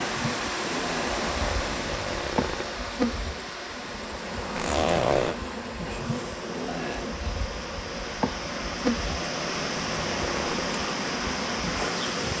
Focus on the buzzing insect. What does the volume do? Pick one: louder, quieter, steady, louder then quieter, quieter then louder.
steady.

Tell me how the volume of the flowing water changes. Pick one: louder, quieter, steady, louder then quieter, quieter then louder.
quieter then louder.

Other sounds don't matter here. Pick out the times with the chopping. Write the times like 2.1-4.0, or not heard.
not heard.